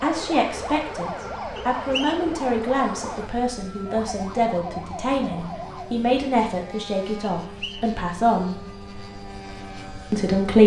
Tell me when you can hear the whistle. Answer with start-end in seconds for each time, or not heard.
1.6-2.3, 7.4-7.9.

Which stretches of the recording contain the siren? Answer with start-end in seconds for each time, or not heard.
0.0-6.0.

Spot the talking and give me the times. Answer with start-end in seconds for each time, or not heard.
0.0-8.6, 10.1-10.6.